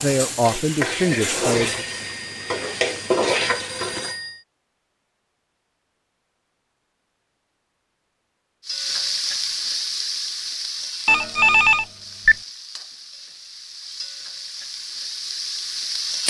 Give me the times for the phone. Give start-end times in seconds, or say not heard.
1.6-4.5, 11.1-12.3.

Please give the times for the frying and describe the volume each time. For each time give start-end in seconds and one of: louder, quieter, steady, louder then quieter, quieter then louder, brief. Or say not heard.
0.1-4.2 quieter then louder
8.7-16.2 quieter then louder.